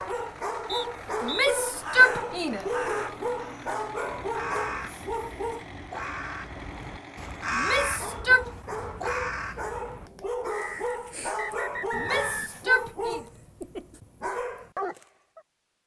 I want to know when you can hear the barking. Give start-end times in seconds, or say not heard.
0.0-5.7, 7.6-15.4.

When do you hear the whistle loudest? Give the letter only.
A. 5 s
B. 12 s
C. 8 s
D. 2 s
B.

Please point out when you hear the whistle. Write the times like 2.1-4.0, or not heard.
0.7-1.5, 10.8-12.6.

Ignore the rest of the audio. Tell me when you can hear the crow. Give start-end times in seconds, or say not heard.
1.7-12.4.